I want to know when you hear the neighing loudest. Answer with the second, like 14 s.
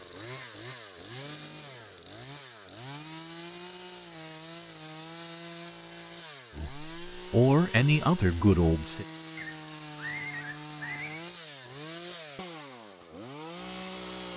10 s.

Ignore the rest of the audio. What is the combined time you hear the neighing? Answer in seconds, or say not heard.
3 s.